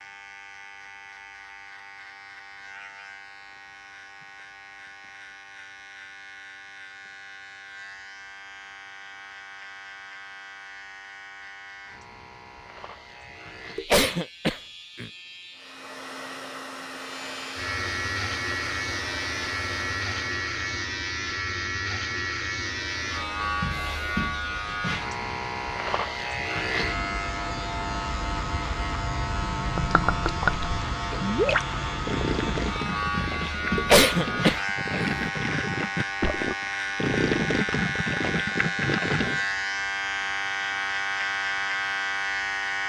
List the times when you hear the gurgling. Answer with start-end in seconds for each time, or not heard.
29.6-39.4.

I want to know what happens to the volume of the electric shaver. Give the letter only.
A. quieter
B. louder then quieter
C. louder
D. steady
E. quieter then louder
C.